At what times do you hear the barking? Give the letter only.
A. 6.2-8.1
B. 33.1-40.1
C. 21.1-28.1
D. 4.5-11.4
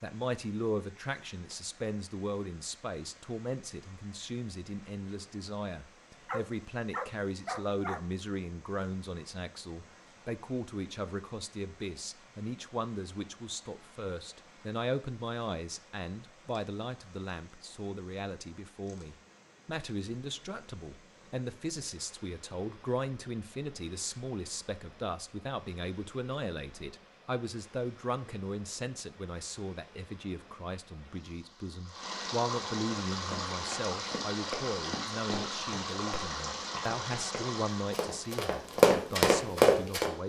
A.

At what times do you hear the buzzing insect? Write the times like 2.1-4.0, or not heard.
not heard.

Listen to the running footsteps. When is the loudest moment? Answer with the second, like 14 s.
39 s.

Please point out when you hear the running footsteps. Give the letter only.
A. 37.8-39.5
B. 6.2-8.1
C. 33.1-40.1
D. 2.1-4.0
C.